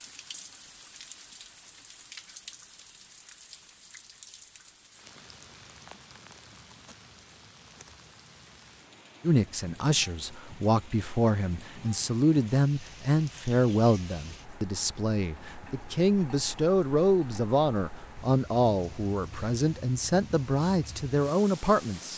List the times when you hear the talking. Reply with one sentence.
You can hear the talking from 9.2 to 22.1 s.